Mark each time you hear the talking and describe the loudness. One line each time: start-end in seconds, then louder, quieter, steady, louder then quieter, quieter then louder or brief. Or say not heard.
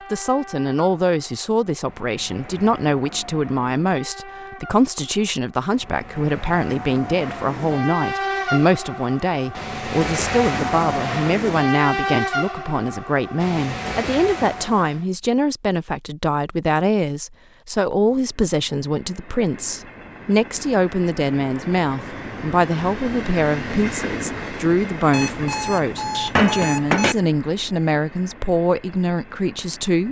0.1-30.0 steady.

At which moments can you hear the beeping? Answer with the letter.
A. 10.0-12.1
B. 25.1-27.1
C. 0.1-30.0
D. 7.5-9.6
B.